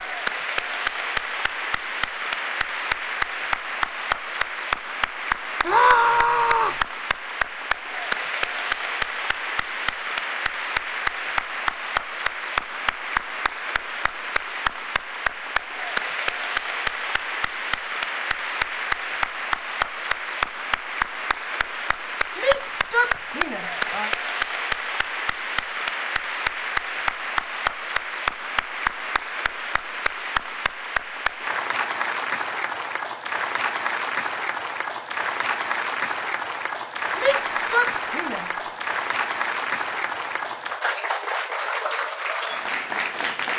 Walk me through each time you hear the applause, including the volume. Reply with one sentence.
The applause can be heard from 0.0 to 43.5 s, at a steady volume.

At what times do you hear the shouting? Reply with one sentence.
You can hear the shouting from 5.7 to 6.8 s, from 22.4 to 24.1 s and from 37.1 to 38.5 s.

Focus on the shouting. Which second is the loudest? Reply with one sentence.
The volume of the shouting peaks at 6 seconds.